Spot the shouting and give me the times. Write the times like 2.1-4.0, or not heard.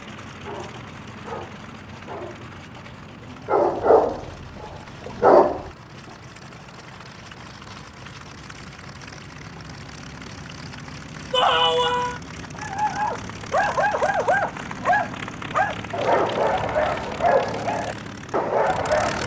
11.3-12.2.